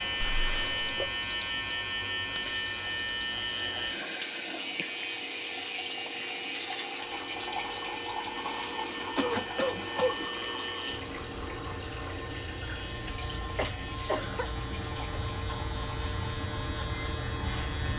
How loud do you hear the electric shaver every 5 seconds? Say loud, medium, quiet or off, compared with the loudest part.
loud, medium, medium, loud.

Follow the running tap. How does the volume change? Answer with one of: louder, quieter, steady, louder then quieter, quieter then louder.
louder then quieter.